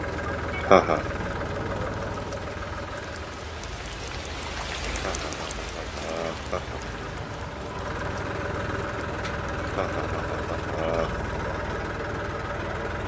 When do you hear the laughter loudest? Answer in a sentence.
The loudest moment of the laughter is at 1 second.